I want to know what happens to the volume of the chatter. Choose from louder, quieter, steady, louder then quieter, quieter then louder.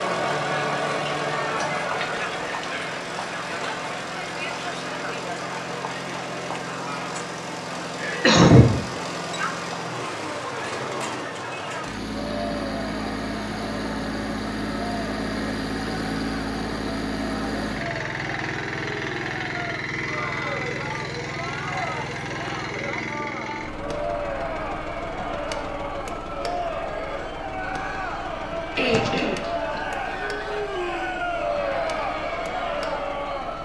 quieter then louder.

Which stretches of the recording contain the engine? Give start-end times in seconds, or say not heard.
0.0-33.6.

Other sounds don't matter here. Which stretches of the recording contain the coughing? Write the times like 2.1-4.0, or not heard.
8.1-8.7, 28.8-29.8.